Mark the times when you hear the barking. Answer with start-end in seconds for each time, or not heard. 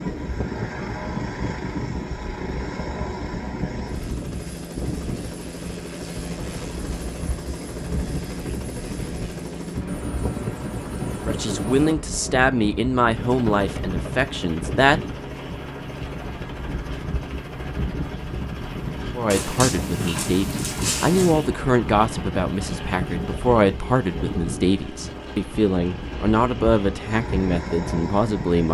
19.3-21.5.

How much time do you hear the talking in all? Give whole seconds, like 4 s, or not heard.
13 s.